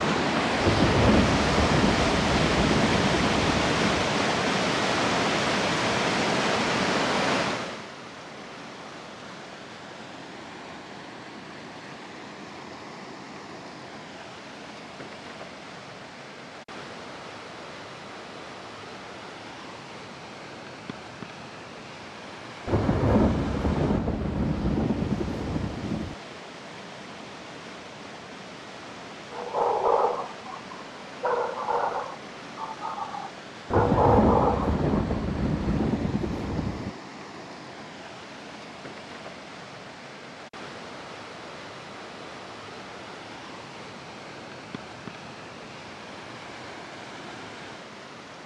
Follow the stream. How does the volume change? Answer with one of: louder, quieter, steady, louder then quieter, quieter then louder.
quieter.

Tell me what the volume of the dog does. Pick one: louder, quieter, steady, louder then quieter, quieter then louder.
quieter then louder.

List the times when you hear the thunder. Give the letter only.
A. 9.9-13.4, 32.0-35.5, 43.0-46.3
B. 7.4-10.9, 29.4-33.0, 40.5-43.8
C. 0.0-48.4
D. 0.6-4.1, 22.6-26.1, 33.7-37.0
D.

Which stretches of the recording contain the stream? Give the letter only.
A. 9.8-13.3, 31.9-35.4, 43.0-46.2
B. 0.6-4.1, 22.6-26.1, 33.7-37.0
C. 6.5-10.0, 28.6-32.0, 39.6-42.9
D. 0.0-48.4
D.